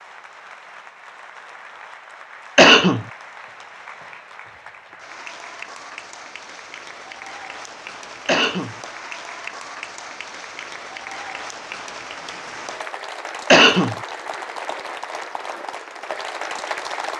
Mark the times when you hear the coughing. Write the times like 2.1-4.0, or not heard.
2.5-3.0, 8.2-8.8, 13.5-13.9.